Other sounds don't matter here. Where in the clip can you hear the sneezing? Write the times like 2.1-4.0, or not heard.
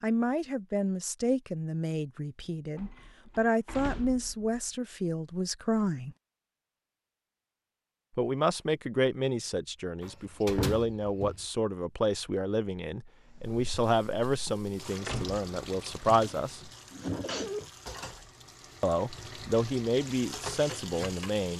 16.2-17.6.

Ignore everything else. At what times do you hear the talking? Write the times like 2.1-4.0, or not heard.
0.0-6.2, 8.2-16.7, 18.8-21.5.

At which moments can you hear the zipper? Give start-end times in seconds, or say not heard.
not heard.